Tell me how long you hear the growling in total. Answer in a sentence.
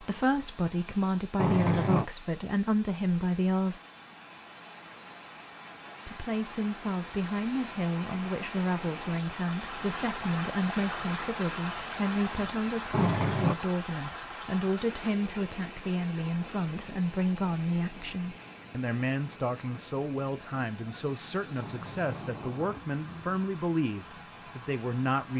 The growling can be heard for 3 seconds in total.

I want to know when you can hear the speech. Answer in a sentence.
The speech can be heard from 0.0 to 3.8 s and from 6.0 to 25.3 s.